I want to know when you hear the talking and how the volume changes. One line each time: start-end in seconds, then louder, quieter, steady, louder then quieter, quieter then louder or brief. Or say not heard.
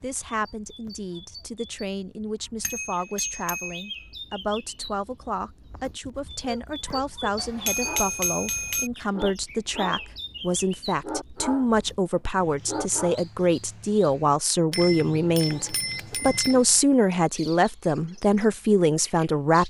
0.0-19.6 louder.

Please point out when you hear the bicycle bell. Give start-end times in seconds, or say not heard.
2.6-4.0, 7.3-8.9, 14.7-16.6.